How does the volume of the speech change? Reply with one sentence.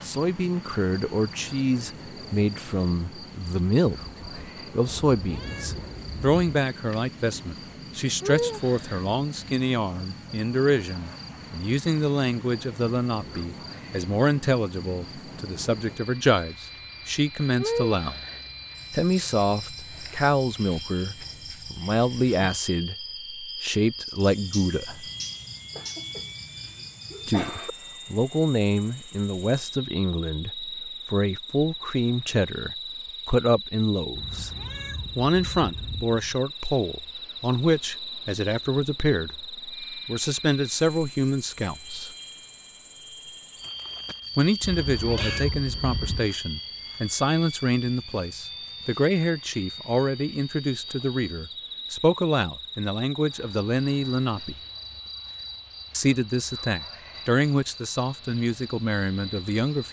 The volume of the speech stays about the same.